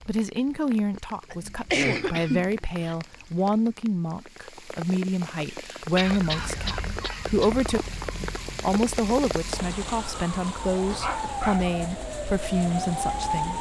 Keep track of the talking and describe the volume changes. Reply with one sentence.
The loudness of the talking stays about the same.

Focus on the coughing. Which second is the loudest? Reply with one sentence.
The loudest moment of the coughing is at 2 seconds.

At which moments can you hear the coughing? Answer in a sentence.
You can hear the coughing from 1.3 to 3.0 s, from 5.5 to 7.5 s and from 10.9 to 11.8 s.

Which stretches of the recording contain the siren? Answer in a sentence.
You can hear the siren from 6.1 to 13.5 s.